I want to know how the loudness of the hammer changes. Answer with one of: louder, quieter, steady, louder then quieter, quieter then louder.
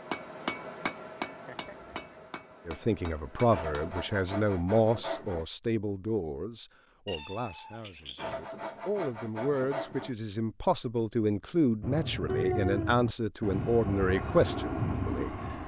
quieter.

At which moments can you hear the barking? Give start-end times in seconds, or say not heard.
not heard.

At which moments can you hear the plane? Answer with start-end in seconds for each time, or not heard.
11.8-15.6.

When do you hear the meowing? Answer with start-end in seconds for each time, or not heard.
1.2-1.9, 7.0-8.3, 12.2-12.9.